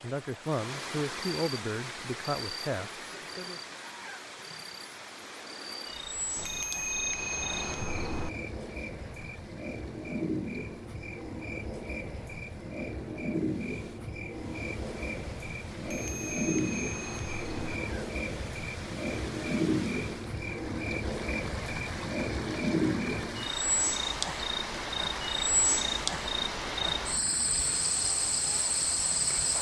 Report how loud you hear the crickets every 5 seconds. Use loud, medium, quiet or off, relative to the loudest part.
quiet, medium, medium, loud, loud, loud.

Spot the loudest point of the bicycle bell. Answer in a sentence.
The volume of the bicycle bell peaks at 7 seconds.